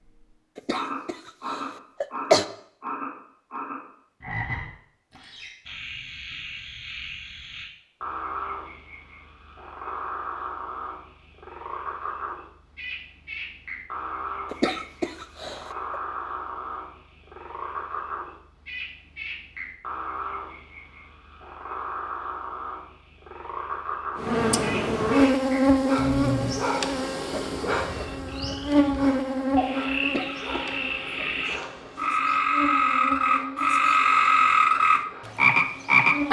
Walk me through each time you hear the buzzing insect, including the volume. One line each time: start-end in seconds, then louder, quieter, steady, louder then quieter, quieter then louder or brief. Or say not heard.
24.1-36.2 quieter.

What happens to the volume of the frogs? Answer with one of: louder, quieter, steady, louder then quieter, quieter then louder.
louder.